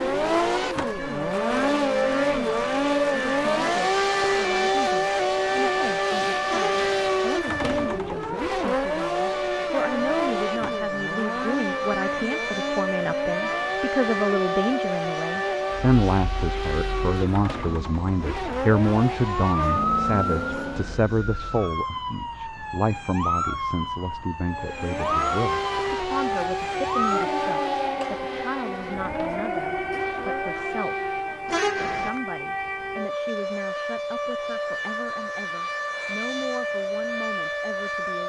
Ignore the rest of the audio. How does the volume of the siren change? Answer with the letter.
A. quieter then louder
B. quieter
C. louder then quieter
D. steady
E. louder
D.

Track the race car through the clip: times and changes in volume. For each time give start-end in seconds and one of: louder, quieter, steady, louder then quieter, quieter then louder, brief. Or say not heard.
0.0-21.1 quieter
24.5-31.6 quieter.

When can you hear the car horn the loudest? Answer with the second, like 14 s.
32 s.